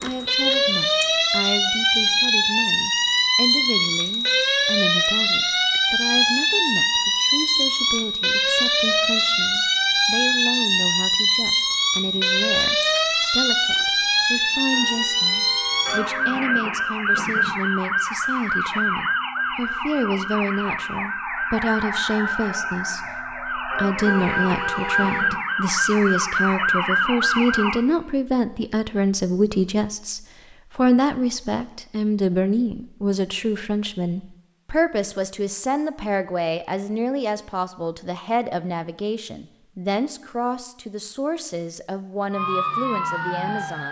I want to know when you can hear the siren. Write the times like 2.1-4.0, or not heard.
0.0-27.8, 42.3-43.8.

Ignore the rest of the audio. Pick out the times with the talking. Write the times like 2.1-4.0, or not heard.
0.0-43.8.